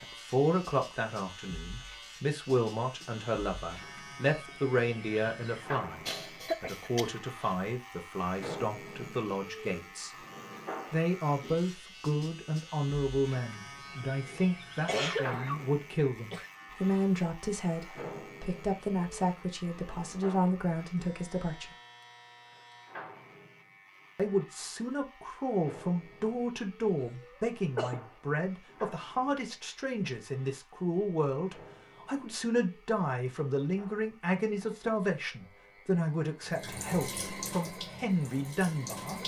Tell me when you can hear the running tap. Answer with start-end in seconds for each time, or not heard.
36.4-39.2.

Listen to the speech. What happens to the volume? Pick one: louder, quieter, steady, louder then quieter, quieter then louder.
steady.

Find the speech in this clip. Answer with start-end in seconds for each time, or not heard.
0.0-10.2, 10.9-21.6, 24.1-39.2.